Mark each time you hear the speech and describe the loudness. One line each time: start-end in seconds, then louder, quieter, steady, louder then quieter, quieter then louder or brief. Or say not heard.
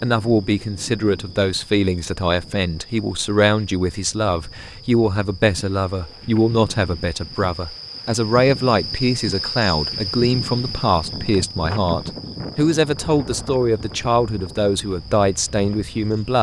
0.0-16.3 steady.